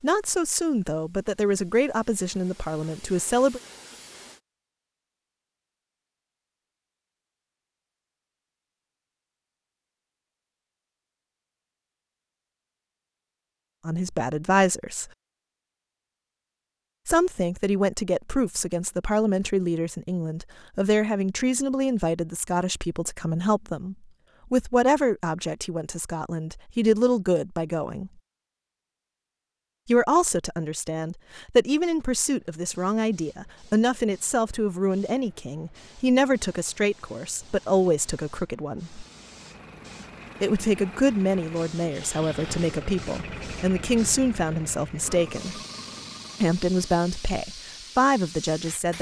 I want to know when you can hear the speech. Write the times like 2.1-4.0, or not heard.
0.0-3.6, 13.8-15.1, 17.1-28.1, 29.9-39.0, 40.4-45.6, 46.4-48.9.